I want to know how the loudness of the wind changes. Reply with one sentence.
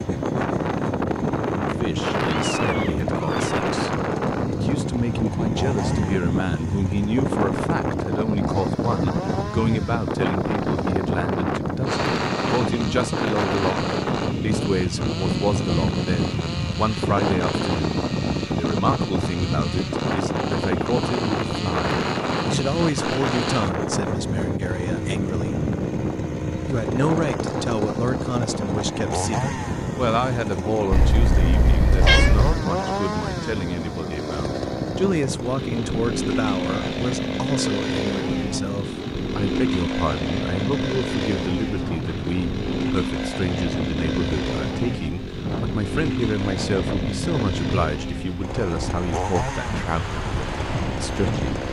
The loudness of the wind goes down.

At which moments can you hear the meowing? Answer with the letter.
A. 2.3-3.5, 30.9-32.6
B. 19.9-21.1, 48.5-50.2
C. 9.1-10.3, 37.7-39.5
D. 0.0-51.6
A.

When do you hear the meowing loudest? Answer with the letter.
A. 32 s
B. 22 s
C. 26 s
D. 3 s
A.